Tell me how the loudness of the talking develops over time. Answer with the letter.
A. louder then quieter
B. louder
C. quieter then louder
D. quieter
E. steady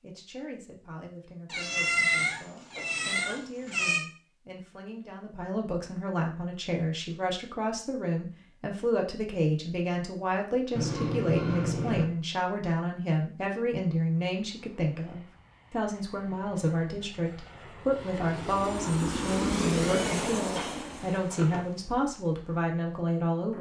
B.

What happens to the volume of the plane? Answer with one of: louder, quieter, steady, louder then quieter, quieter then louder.
louder then quieter.